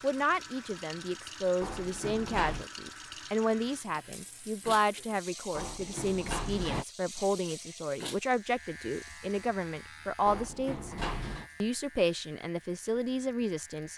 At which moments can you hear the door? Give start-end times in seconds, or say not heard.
1.6-2.6, 5.5-6.8, 10.2-11.5.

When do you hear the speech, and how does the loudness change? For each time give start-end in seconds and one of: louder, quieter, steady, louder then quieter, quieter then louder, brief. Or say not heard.
0.0-10.9 steady
11.6-13.9 brief.